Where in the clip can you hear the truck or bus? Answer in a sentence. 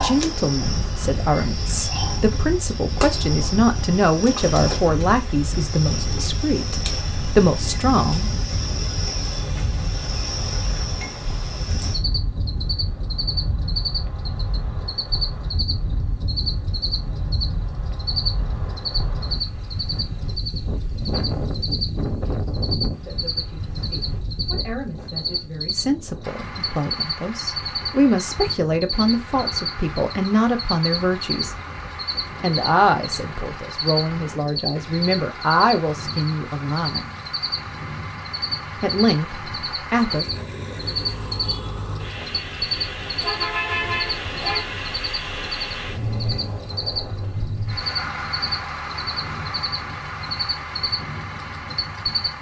You can hear the truck or bus from 26.2 to 52.3 s.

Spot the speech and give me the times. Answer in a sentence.
You can hear the speech from 0.0 to 8.4 s, from 23.0 to 31.6 s, from 32.4 to 37.0 s and from 38.8 to 40.2 s.